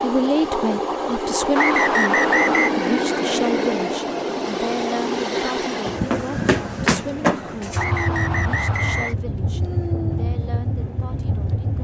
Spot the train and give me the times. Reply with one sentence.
The train can be heard from 0.0 to 11.7 s.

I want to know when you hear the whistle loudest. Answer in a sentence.
The volume of the whistle peaks at 2 seconds.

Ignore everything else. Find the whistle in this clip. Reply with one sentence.
You can hear the whistle from 1.6 to 2.7 s and from 7.8 to 9.2 s.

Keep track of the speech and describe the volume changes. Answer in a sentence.
The volume of the speech goes down.